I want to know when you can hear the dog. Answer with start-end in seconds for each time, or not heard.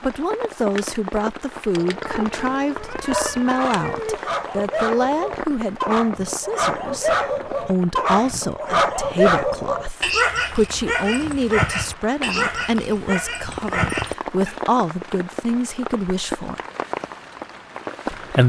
2.8-14.6.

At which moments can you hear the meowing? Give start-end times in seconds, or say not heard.
1.8-4.2.